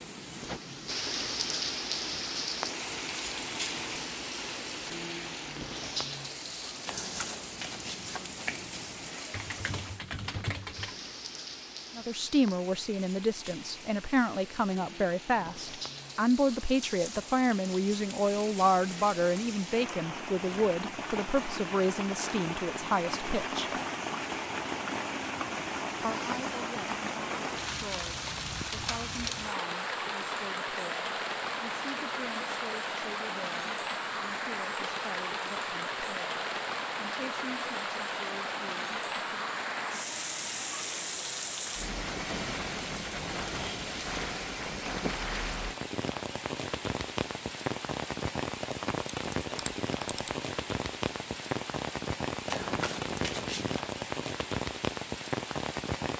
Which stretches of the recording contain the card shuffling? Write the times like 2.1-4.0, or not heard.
6.8-9.2, 52.5-53.8.